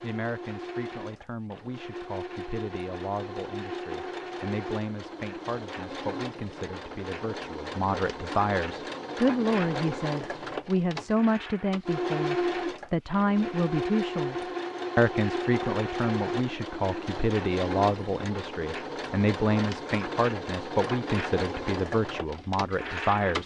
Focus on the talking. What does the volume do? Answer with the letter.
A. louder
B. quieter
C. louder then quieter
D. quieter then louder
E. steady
A.